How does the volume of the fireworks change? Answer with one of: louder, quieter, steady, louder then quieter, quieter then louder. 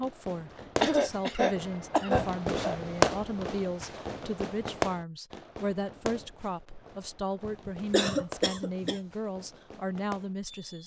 louder then quieter.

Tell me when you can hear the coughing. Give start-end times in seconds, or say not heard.
0.8-2.8, 7.7-9.0.